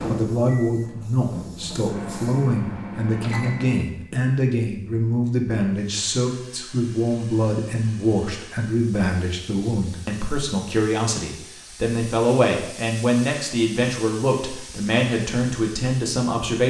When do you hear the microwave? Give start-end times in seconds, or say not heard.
0.0-4.0.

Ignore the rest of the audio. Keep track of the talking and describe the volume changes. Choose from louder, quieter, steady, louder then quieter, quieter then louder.
steady.